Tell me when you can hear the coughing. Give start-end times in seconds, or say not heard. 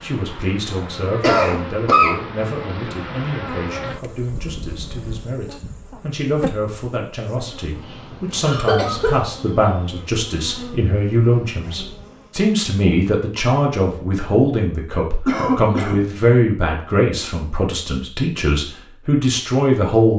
0.2-2.2, 8.4-9.2, 15.2-16.1.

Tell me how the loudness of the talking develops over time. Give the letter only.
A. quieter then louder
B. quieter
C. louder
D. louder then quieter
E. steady
C.